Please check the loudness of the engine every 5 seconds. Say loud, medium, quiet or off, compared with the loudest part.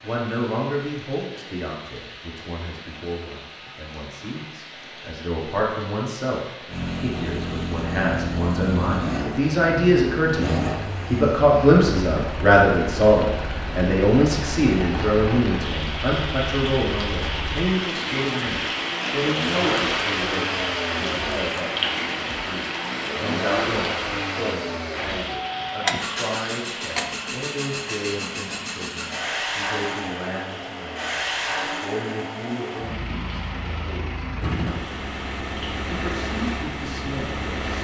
off, loud, loud, loud, loud, loud, loud, loud.